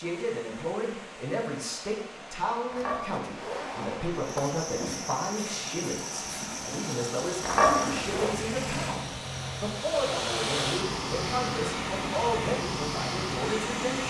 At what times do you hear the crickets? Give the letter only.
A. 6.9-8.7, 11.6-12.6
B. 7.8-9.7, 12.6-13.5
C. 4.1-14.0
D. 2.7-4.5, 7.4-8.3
C.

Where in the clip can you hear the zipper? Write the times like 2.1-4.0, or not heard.
2.7-4.5, 7.4-8.3.